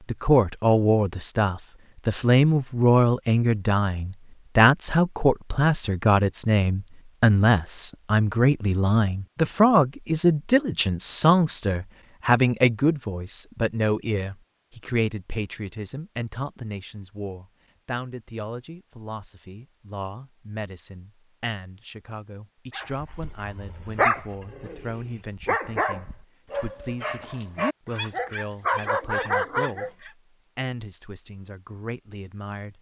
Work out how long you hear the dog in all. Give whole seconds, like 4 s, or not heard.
7 s.